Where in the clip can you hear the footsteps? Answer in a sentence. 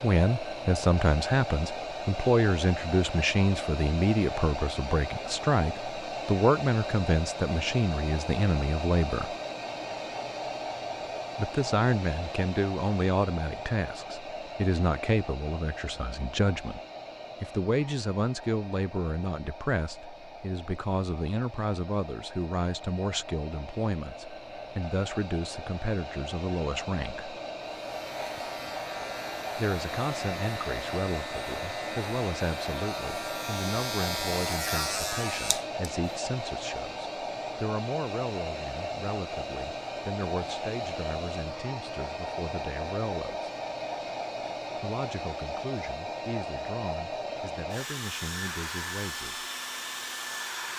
You can't hear the footsteps here.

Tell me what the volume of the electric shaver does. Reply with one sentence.
The volume of the electric shaver goes up.